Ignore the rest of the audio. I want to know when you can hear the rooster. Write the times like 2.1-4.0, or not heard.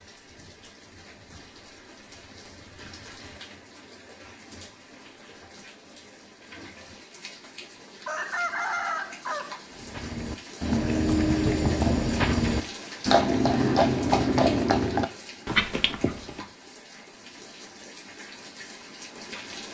8.1-9.6.